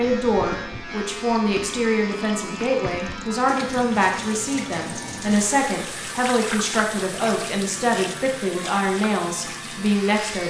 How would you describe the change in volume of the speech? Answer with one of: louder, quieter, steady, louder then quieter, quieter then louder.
steady.